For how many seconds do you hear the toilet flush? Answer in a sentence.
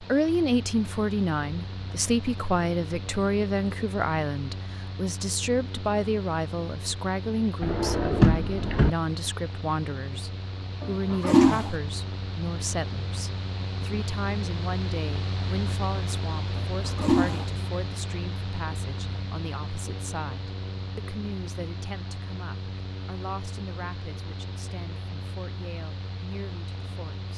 The toilet flush can be heard for 2 seconds in total.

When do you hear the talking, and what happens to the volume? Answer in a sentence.
The talking can be heard from 0.0 to 27.3 s, getting quieter.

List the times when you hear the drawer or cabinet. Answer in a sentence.
You can hear the drawer or cabinet from 7.6 to 8.9 s.